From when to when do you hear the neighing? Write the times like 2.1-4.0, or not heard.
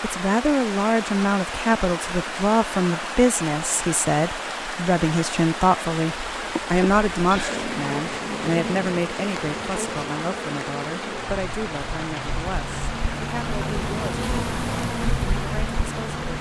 7.3-9.1.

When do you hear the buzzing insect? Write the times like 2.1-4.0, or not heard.
6.1-16.3.